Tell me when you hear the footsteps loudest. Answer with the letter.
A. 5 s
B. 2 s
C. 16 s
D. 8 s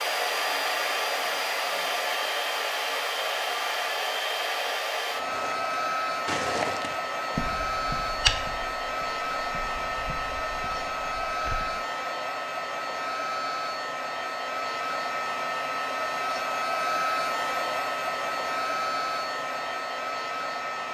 D.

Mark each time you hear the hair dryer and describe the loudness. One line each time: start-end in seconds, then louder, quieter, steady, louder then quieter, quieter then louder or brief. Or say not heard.
0.0-20.8 steady.